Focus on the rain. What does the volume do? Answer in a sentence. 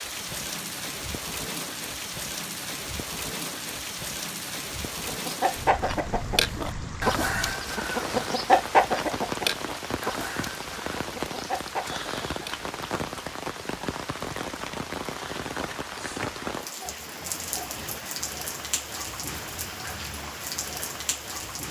The loudness of the rain stays about the same.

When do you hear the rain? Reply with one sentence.
The rain can be heard from 0.0 to 21.6 s.